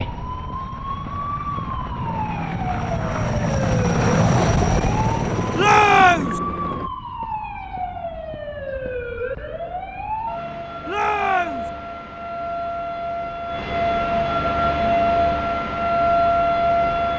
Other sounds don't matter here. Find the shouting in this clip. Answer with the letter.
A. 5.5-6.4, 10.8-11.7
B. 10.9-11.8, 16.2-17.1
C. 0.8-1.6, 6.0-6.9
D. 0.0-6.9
A.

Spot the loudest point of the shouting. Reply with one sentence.
The loudest moment of the shouting is at 6 seconds.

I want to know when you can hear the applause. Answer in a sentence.
The applause can't be heard in this clip.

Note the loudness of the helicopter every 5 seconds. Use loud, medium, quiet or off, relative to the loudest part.
loud, loud, off, off.